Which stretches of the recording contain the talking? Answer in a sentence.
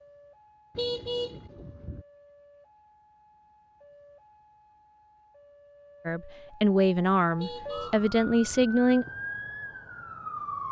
The talking can be heard from 6.0 to 9.1 s.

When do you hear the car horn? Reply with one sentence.
The car horn can be heard from 0.8 to 2.0 s and from 7.3 to 8.7 s.